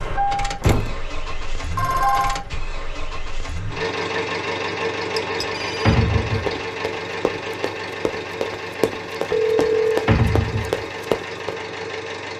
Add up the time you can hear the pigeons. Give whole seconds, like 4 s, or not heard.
not heard.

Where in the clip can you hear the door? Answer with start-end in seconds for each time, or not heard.
0.6-1.0, 5.8-6.6, 10.1-10.8.